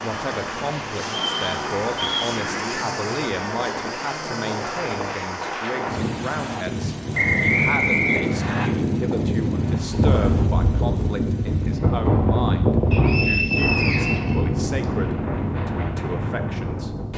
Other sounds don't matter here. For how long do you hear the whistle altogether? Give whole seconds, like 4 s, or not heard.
5 s.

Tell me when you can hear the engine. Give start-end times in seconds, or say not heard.
0.0-11.8.